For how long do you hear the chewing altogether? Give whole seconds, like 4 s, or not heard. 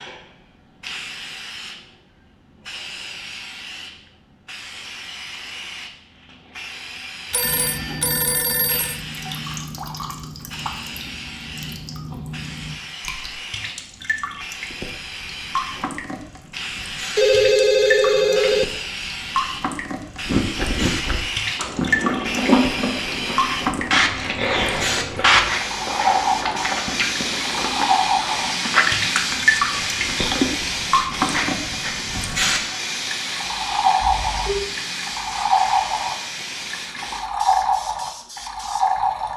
10 s.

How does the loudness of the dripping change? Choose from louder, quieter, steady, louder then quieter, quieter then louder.
louder.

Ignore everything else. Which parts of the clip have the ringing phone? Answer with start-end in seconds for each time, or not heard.
7.3-9.0, 17.1-18.6, 34.0-34.7.